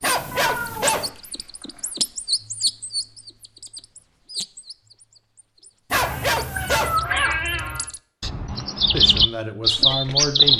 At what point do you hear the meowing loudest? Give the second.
7 s.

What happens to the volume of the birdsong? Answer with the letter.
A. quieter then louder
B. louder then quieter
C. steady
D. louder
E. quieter
A.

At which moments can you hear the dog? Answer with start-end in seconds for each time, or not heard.
0.0-1.1, 5.9-7.0.